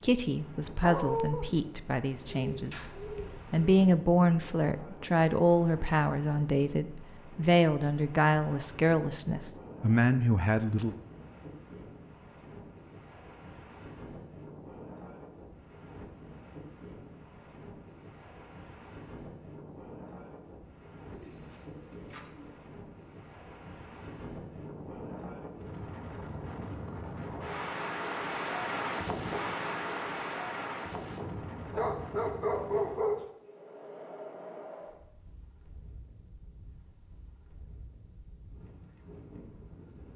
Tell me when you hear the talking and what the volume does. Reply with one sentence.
You can hear the talking briefly from 0.0 to 2.9 s; and from 3.5 to 10.9 s, at a steady volume.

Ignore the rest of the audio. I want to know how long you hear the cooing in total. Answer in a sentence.
You can hear the cooing for 3 seconds altogether.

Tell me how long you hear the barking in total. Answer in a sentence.
You can hear the barking for 2 seconds altogether.